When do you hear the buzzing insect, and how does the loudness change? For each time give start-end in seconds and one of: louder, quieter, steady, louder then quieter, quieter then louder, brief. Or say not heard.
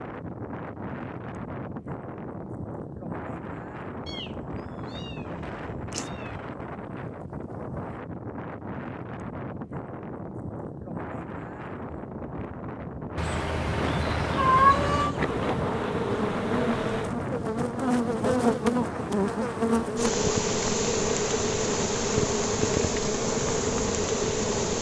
14.7-24.7 steady.